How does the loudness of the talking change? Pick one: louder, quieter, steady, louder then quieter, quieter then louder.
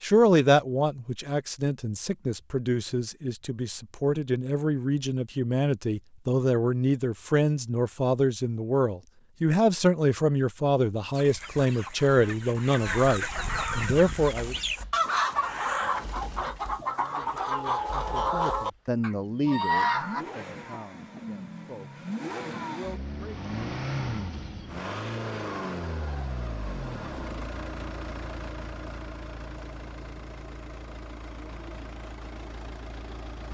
quieter.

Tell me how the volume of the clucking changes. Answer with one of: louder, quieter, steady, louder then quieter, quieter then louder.
louder.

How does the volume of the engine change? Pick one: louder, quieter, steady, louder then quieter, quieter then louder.
louder then quieter.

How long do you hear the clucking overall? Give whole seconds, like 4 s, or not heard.
9 s.